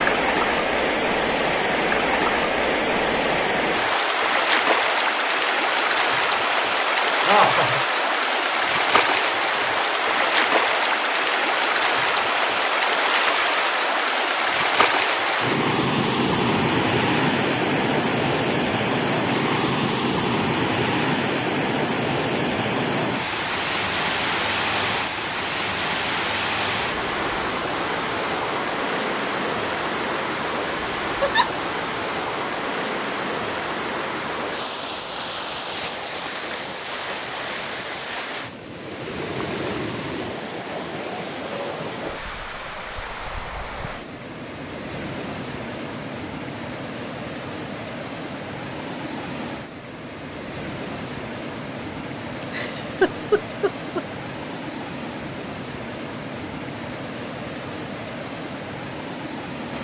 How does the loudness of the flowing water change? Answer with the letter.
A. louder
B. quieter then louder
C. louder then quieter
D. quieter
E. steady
D.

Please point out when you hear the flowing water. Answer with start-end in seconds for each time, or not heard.
0.0-59.7.